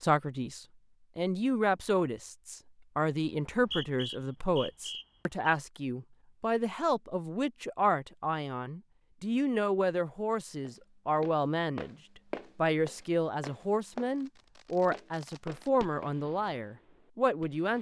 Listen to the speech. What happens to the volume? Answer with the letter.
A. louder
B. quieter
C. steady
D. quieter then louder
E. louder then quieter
C.